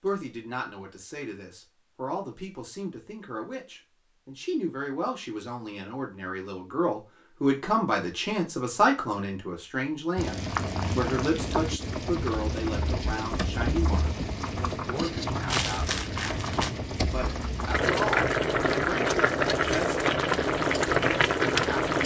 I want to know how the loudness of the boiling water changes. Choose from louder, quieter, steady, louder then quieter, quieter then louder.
louder.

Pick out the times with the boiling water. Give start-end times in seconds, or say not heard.
10.2-22.0.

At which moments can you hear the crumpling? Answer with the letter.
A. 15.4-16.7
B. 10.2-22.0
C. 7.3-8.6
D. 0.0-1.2
A.